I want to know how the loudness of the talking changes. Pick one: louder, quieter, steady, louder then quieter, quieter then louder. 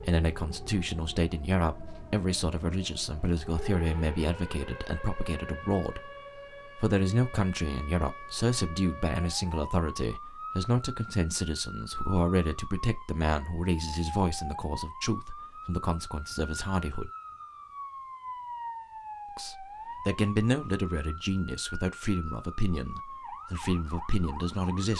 steady.